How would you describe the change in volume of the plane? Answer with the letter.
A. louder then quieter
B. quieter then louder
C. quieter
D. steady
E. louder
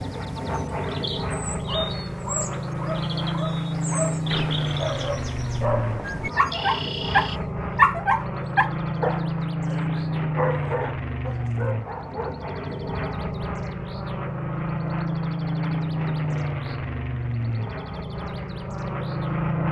D.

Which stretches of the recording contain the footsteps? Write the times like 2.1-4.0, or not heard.
not heard.